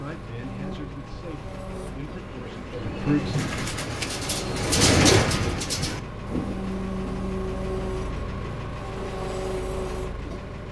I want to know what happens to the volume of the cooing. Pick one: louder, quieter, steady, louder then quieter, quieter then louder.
louder then quieter.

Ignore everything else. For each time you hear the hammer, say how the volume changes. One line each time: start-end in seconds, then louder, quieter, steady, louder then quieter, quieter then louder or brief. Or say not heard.
not heard.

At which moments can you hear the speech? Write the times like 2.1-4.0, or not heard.
0.0-3.5.